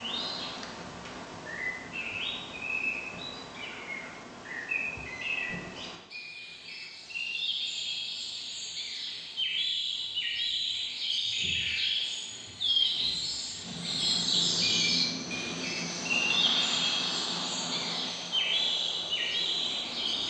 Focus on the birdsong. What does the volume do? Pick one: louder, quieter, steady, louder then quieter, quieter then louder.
louder.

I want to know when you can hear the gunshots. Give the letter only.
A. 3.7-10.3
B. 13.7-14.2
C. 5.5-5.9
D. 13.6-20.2
C.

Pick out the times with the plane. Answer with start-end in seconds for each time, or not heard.
13.6-20.2.